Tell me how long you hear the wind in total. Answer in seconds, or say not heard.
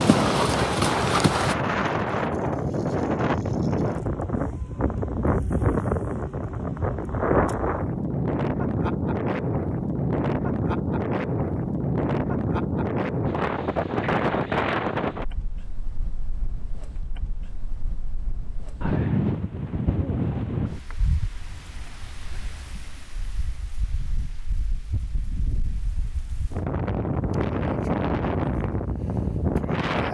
30 s.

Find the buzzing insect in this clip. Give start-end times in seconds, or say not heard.
not heard.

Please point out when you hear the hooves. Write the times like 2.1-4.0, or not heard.
0.0-1.6.